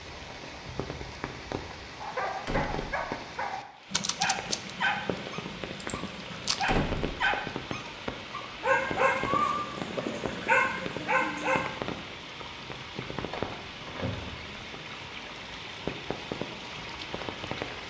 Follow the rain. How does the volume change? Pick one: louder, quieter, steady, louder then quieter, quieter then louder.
steady.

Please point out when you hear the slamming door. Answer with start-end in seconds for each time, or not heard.
2.5-3.0, 6.7-7.2, 13.3-14.6.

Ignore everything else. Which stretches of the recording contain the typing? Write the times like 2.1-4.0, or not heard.
3.9-6.7.